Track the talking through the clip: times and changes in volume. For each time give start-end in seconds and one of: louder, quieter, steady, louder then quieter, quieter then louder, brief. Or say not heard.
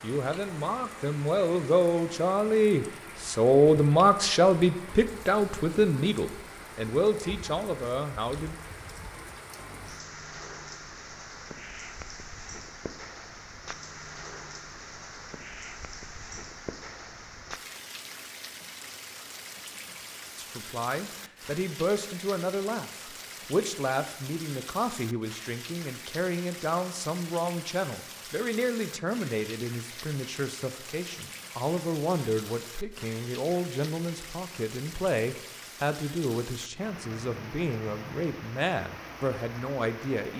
0.0-8.6 louder then quieter
20.4-40.3 steady.